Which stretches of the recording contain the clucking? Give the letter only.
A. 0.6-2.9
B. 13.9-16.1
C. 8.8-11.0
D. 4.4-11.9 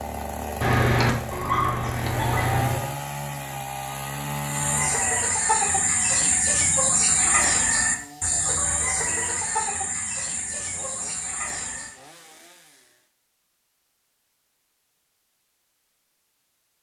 D.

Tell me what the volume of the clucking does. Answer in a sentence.
The loudness of the clucking goes down.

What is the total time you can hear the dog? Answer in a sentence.
You can hear the dog for 2 seconds altogether.